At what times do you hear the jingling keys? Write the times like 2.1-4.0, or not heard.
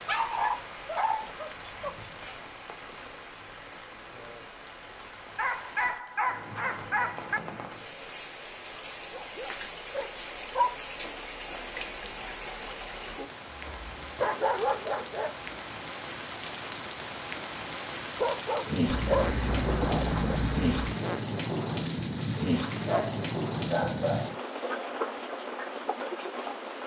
1.6-2.2, 14.0-14.4, 18.9-20.9.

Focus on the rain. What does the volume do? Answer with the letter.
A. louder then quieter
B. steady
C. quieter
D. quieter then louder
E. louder
E.